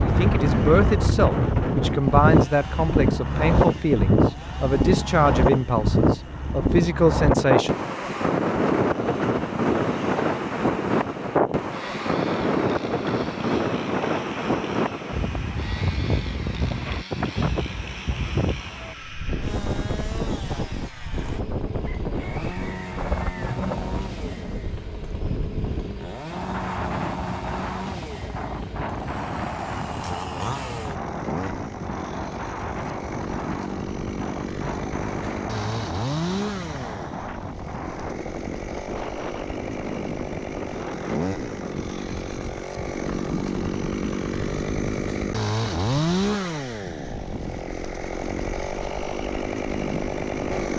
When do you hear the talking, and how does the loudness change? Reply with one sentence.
You can hear the talking from 0.0 to 7.7 s, at a steady volume.